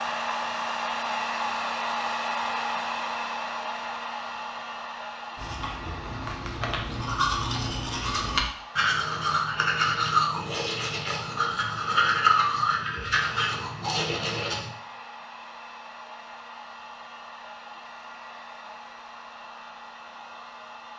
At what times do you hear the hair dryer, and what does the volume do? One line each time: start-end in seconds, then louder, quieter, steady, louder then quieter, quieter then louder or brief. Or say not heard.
0.0-20.9 quieter.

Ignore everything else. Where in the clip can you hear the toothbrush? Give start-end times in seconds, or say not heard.
5.3-14.7.